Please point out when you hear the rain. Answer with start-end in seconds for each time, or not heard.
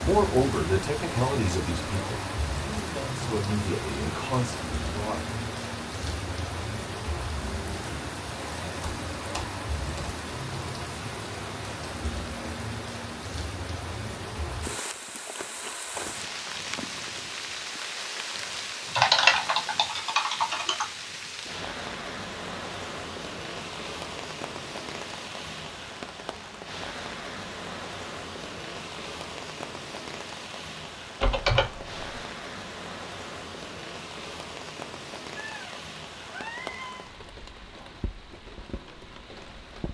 0.0-39.8.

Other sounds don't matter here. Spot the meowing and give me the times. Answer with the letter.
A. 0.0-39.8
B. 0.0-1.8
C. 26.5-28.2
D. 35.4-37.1
D.